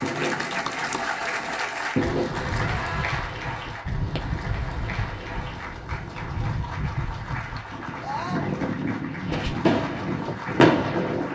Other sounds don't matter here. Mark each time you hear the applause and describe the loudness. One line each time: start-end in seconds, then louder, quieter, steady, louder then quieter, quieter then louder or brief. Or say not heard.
0.0-11.3 quieter.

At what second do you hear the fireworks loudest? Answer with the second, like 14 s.
11 s.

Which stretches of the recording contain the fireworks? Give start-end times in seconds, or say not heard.
0.0-2.9, 9.2-11.1.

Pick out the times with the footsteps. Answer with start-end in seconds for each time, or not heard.
not heard.